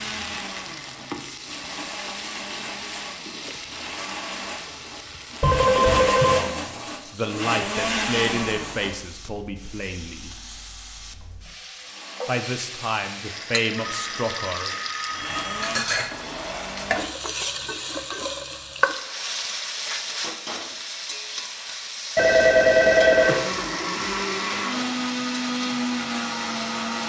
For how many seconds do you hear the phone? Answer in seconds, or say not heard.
4 s.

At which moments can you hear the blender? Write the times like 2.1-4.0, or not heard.
0.0-9.0, 11.8-17.2, 23.1-27.0.